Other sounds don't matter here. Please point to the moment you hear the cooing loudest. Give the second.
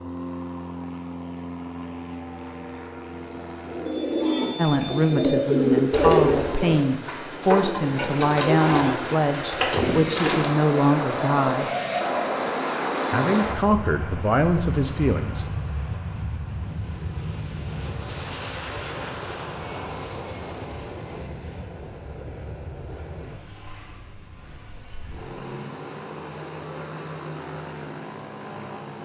6 s.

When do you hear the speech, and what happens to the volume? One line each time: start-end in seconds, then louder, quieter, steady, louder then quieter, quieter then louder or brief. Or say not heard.
4.5-11.7 steady
13.1-15.6 brief.